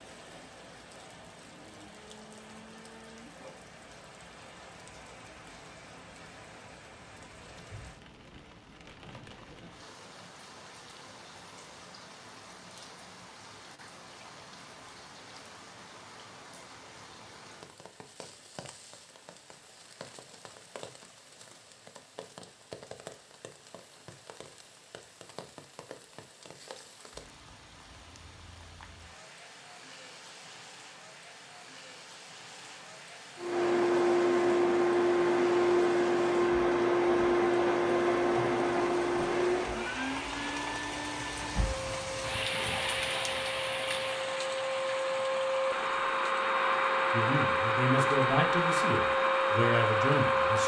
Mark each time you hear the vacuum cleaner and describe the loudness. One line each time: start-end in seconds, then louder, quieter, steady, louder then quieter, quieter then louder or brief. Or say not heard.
33.4-50.6 quieter then louder.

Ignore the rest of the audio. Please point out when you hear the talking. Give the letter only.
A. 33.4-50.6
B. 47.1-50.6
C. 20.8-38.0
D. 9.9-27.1
B.